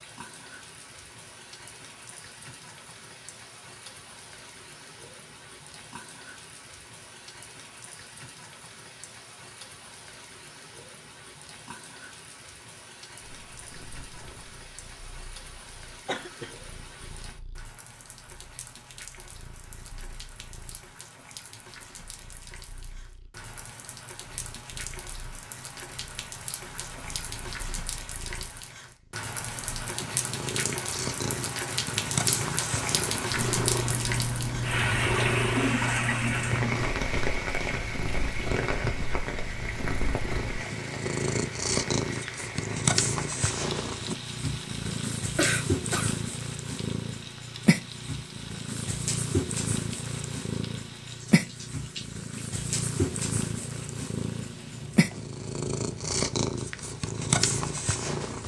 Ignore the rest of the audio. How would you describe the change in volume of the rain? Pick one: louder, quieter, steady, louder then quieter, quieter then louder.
louder then quieter.